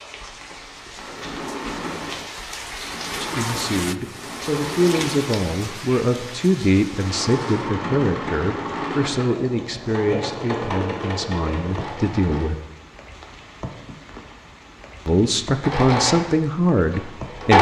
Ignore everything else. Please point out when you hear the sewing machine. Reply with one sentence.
You can hear the sewing machine from 0.0 to 12.5 s and from 15.6 to 17.5 s.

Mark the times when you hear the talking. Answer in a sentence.
You can hear the talking from 3.2 to 12.6 s and from 15.1 to 17.5 s.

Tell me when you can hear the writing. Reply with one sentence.
The writing can't be heard in this clip.